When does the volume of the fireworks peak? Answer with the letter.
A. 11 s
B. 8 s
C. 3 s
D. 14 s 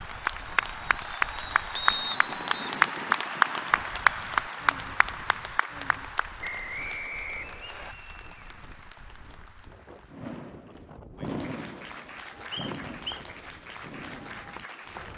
A.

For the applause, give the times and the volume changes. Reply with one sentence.
You can hear the applause from 0.0 to 15.1 s, getting quieter then louder.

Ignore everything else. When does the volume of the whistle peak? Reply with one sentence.
The volume of the whistle peaks at 2 seconds.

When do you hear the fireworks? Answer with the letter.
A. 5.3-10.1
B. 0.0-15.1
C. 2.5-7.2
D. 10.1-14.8
D.